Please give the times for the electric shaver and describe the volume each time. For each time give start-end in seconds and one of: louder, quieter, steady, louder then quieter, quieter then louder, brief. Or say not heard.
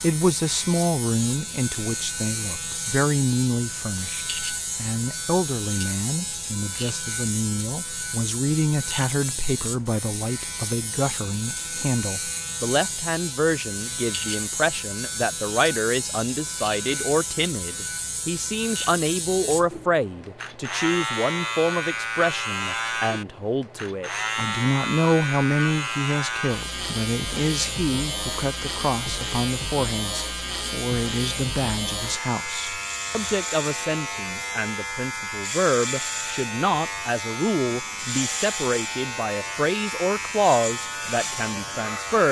0.0-42.2 steady.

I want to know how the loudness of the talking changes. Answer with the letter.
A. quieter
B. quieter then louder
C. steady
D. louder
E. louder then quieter
C.